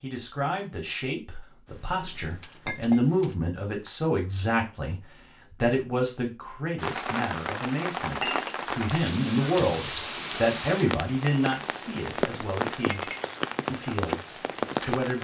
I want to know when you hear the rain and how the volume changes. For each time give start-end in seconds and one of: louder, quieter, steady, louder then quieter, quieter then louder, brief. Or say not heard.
6.8-15.1 steady.